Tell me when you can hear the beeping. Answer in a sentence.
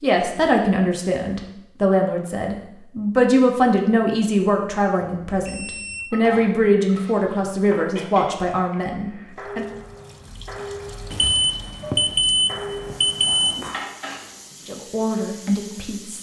You can hear the beeping from 5.0 to 6.0 s and from 11.1 to 13.8 s.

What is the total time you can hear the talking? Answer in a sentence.
You can hear the talking for 11 seconds altogether.